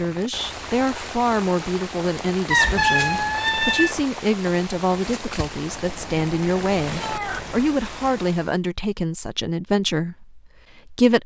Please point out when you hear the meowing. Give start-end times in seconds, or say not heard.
2.5-4.0, 5.7-7.7.